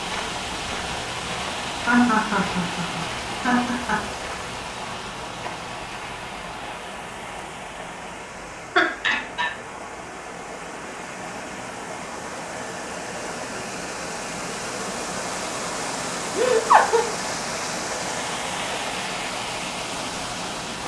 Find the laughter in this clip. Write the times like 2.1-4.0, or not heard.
1.9-4.0, 8.8-9.5, 16.4-17.1.